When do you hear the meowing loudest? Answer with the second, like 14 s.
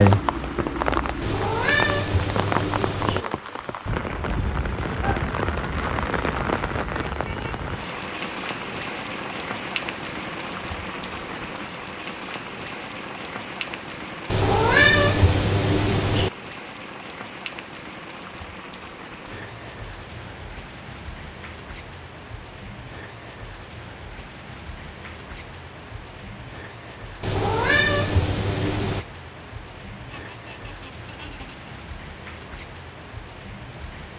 15 s.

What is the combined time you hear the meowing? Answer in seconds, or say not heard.
6 s.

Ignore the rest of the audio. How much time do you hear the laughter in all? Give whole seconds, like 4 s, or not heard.
2 s.